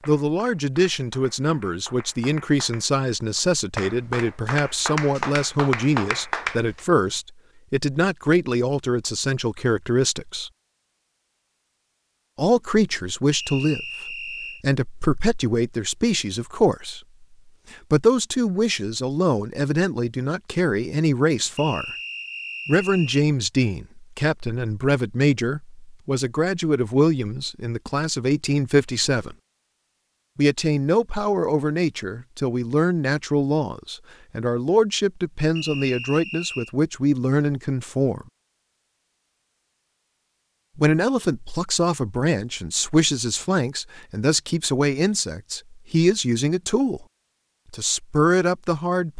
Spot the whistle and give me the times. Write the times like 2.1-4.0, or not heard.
13.3-14.7, 21.6-23.2, 35.5-36.8.